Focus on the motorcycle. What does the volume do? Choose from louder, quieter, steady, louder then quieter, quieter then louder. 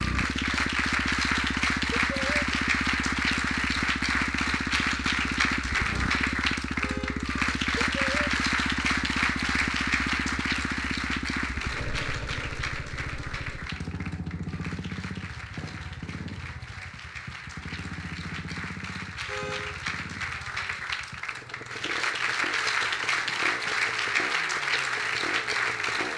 quieter.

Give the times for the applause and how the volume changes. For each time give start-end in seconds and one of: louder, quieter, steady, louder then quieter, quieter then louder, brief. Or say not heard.
0.0-26.1 quieter then louder.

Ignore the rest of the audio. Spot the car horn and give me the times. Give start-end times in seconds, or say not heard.
6.8-7.2, 19.2-19.9.